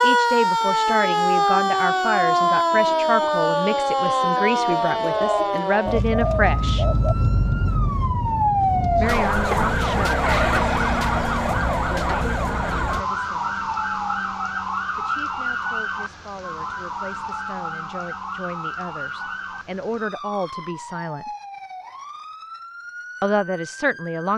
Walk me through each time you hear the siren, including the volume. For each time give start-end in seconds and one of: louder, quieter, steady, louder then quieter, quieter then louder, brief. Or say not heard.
0.0-24.3 quieter.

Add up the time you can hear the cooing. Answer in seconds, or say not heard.
2 s.